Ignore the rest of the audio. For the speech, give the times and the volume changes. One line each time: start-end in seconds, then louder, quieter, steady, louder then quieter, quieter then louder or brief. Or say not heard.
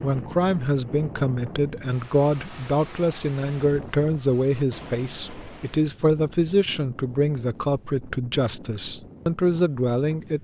0.0-10.3 steady.